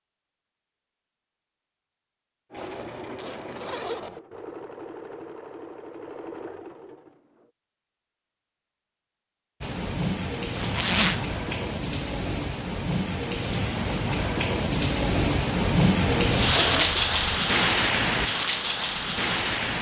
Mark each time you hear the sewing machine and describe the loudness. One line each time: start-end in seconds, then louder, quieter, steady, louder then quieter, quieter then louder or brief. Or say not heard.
2.5-7.2 steady.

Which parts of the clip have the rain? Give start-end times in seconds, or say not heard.
9.6-19.7.